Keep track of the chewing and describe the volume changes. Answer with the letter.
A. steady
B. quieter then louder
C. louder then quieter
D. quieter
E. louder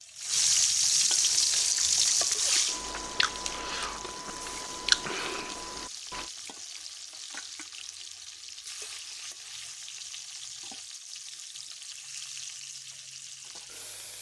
C.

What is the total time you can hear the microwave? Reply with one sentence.
You can't hear the microwave here.